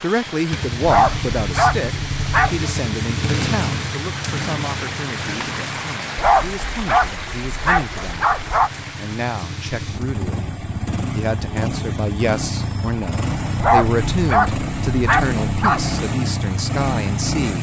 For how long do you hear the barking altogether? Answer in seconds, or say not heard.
7 s.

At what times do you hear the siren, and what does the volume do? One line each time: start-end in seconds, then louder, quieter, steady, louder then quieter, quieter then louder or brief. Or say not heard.
not heard.